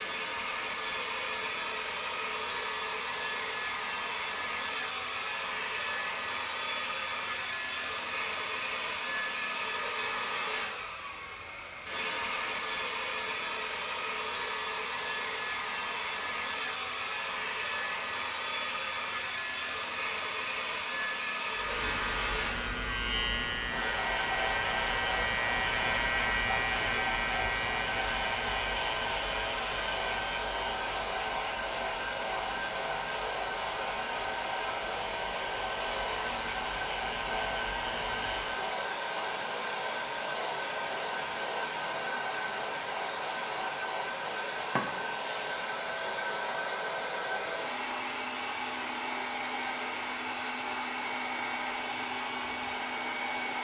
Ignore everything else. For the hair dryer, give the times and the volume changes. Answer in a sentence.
You can hear the hair dryer from 0.0 to 53.5 s, at a steady volume.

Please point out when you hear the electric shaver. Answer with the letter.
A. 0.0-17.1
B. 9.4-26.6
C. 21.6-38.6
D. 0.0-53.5
C.